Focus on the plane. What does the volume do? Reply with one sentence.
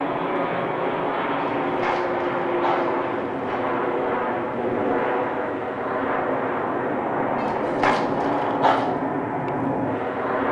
The loudness of the plane stays about the same.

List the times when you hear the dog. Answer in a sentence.
The dog can be heard from 1.4 to 3.6 s and from 7.3 to 8.8 s.